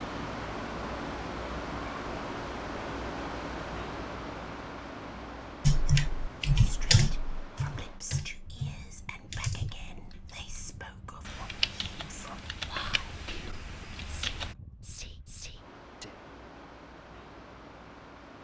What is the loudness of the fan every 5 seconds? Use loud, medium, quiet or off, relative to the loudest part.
loud, medium, quiet, quiet.